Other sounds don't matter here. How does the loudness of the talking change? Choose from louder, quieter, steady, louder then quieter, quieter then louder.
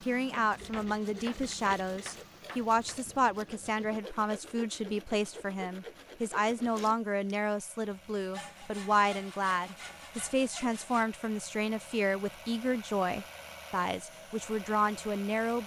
steady.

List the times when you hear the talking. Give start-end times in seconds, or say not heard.
0.0-15.6.